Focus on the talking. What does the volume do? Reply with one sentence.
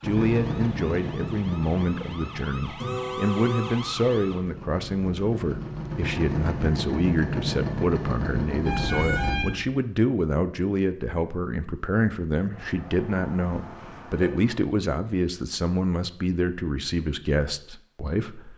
The loudness of the talking stays about the same.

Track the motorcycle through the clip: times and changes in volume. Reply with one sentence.
You can hear the motorcycle from 0.0 to 9.4 s, getting quieter then louder.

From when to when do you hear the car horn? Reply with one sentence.
You can hear the car horn from 2.8 to 3.8 s, from 8.7 to 9.7 s and from 12.5 to 14.6 s.